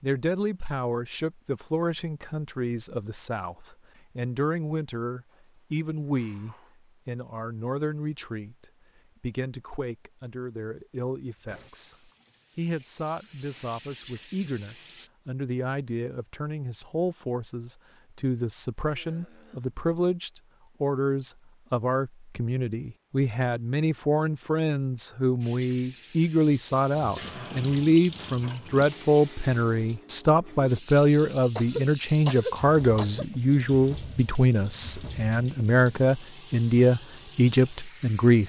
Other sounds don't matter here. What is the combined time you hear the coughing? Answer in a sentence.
You can hear the coughing for 4 seconds altogether.